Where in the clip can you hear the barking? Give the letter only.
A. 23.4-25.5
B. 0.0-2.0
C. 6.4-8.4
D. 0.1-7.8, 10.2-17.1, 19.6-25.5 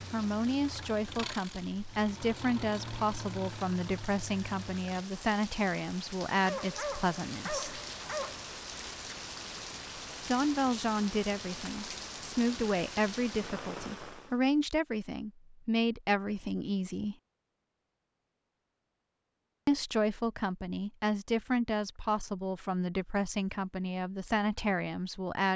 C.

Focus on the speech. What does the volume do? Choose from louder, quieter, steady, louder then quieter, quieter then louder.
steady.